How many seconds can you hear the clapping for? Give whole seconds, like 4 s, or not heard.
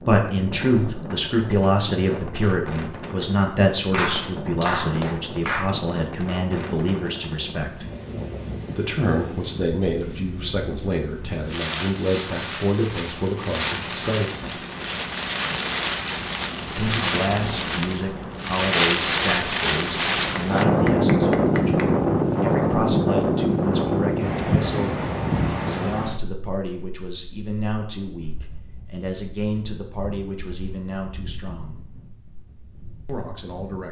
3 s.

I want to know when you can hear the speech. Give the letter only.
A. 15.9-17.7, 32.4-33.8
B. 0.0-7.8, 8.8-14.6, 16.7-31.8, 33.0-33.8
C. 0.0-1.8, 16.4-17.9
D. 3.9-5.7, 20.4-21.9
B.